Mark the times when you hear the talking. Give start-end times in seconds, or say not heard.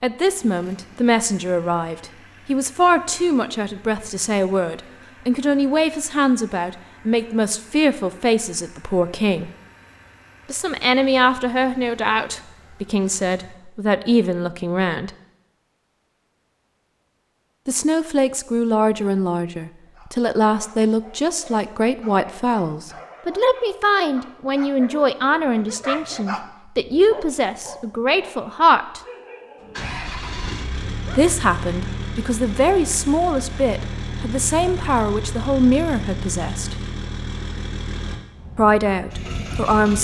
0.0-9.5, 10.5-15.1, 17.6-29.0, 31.1-36.8, 38.5-39.9.